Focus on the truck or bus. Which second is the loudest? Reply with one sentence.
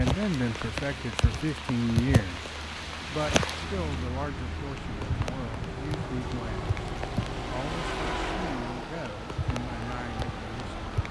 The loudest moment of the truck or bus is at 8 seconds.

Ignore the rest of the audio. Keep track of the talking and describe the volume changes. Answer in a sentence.
The volume of the talking goes down.